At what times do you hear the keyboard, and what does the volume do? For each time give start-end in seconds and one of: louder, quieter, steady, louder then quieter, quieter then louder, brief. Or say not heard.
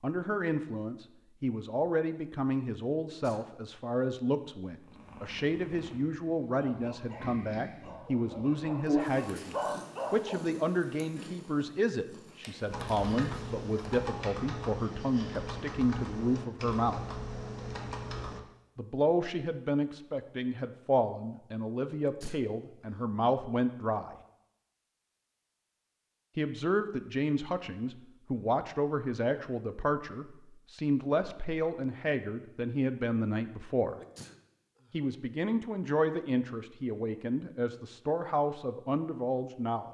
12.7-18.4 steady.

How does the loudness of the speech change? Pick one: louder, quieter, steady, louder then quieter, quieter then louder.
steady.